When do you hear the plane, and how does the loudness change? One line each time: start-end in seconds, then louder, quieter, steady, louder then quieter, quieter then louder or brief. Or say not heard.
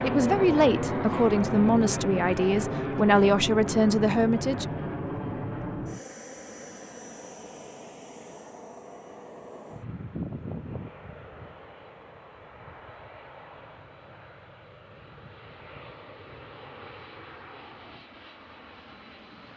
0.0-19.5 quieter.